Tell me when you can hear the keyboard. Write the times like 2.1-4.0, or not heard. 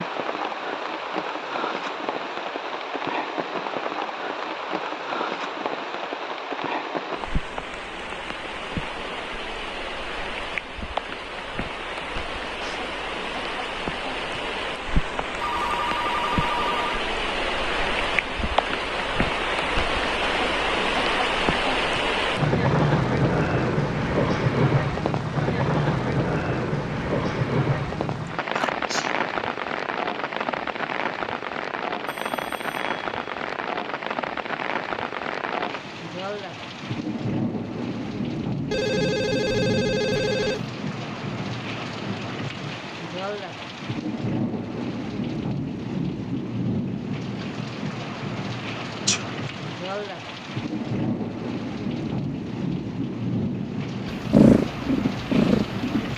not heard.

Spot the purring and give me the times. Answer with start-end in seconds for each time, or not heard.
54.1-56.1.